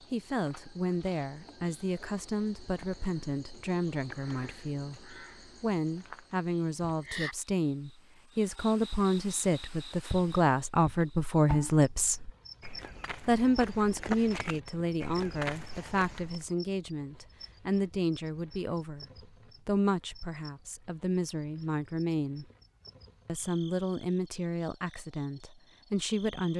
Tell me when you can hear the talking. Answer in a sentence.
The talking can be heard from 0.1 to 12.3 s, from 13.2 to 19.1 s, from 19.6 to 22.4 s and from 23.2 to 26.5 s.